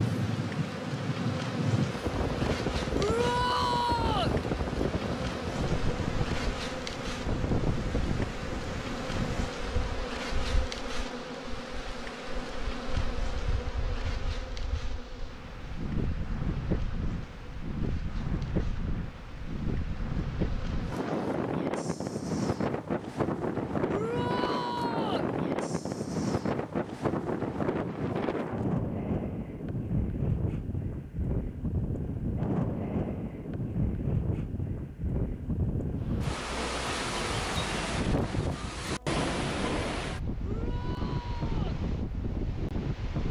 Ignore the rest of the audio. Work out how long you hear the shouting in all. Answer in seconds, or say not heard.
4 s.